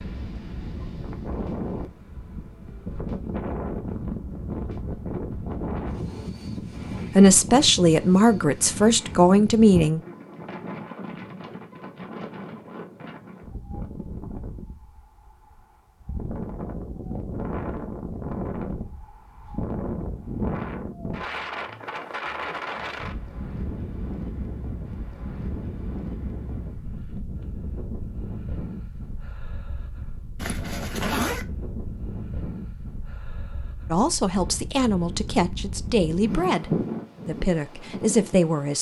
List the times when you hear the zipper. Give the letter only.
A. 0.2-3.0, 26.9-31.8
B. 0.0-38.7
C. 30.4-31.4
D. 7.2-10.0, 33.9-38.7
C.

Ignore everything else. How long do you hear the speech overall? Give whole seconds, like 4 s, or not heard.
8 s.